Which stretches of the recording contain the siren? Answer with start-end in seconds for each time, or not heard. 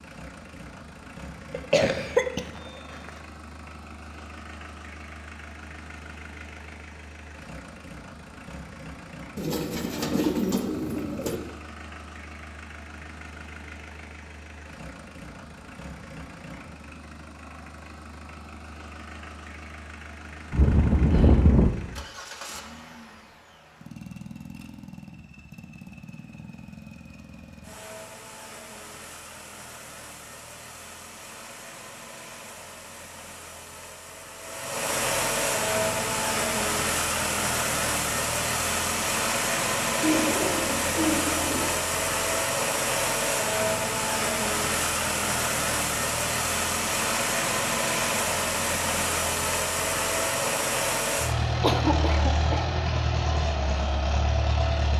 not heard.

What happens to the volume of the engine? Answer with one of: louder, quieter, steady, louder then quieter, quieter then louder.
louder.